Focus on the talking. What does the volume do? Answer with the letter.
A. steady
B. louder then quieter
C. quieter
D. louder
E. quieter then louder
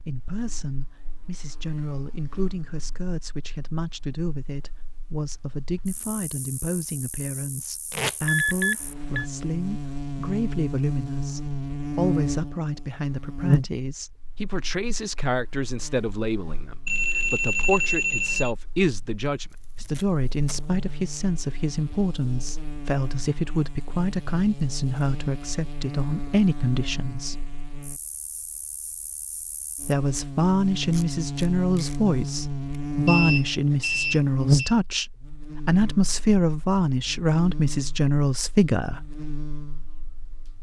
D.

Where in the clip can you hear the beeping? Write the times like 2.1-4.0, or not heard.
8.2-9.2, 16.9-18.6, 33.0-34.8.